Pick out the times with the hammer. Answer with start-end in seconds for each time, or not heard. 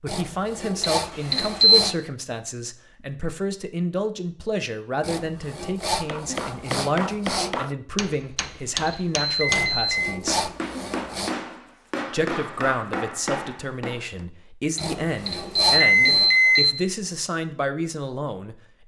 5.9-14.2.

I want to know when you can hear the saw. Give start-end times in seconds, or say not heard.
0.1-2.0, 5.0-7.7, 9.4-11.3, 14.8-16.4.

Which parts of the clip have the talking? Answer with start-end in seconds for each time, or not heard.
0.0-10.5, 12.1-18.8.